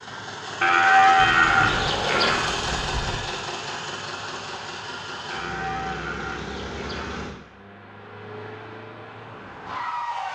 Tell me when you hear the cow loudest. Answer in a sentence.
The volume of the cow peaks at 1 second.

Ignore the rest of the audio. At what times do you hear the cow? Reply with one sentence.
The cow can be heard from 0.6 to 2.5 s and from 5.3 to 7.2 s.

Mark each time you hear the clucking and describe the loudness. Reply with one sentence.
You can't hear the clucking here.